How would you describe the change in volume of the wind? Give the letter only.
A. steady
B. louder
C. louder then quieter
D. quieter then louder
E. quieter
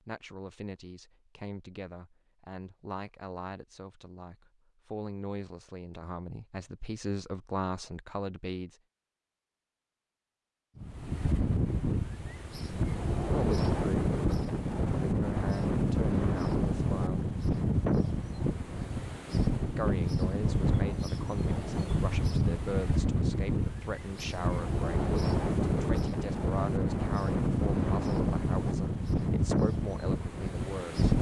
A.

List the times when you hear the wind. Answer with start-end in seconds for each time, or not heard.
10.8-31.1.